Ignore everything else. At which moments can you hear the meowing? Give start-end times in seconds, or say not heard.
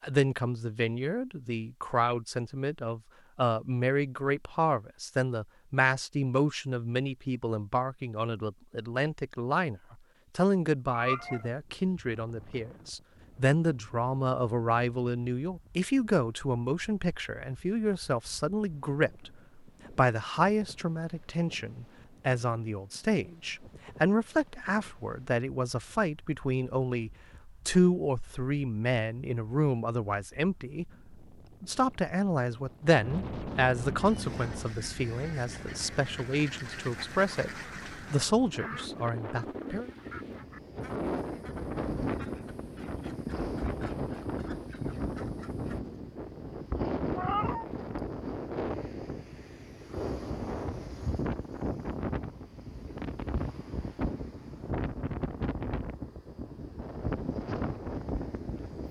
10.9-11.5, 47.1-47.6.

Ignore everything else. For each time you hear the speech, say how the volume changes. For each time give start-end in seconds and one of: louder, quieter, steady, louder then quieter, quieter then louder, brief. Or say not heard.
0.0-39.9 steady.